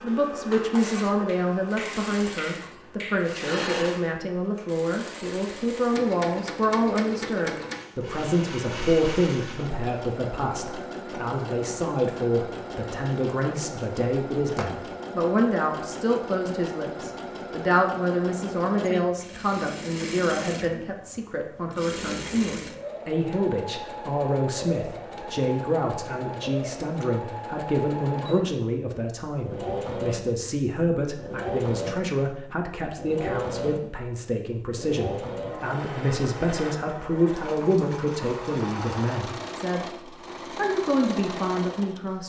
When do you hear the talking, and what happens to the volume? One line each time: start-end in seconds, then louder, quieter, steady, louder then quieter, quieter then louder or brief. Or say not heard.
0.0-42.2 steady.